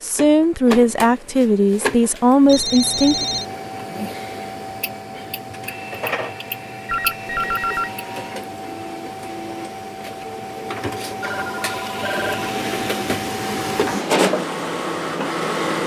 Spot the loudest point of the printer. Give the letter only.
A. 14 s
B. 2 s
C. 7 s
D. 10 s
A.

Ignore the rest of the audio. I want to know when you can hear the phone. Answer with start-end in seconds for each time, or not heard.
2.5-3.5, 6.8-7.9, 11.2-12.6.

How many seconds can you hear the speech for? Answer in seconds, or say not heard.
3 s.